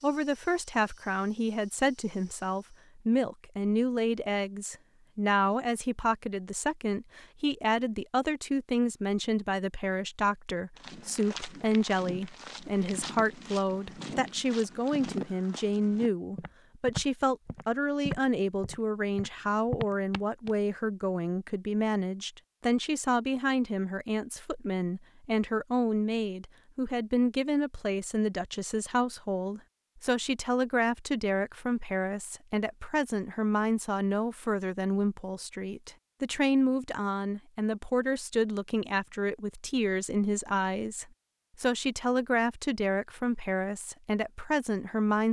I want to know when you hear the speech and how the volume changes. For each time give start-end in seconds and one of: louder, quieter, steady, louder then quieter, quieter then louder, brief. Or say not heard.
0.0-45.2 steady.